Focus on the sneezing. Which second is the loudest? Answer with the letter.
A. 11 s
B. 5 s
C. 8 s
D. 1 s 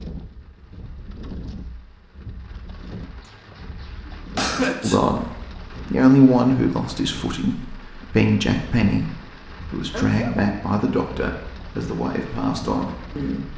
B.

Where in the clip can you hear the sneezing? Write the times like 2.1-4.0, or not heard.
3.2-5.0, 9.9-10.3.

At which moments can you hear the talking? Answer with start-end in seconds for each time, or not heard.
4.8-5.3, 5.9-13.5.